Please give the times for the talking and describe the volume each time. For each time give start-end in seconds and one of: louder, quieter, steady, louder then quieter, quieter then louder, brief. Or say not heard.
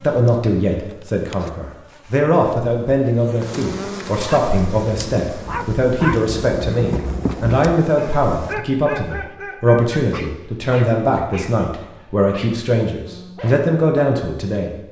0.0-14.8 steady.